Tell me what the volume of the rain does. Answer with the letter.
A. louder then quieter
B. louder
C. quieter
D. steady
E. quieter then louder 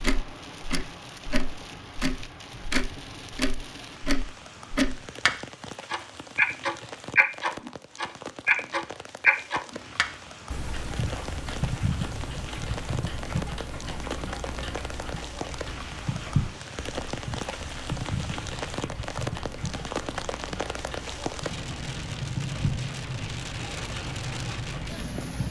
B.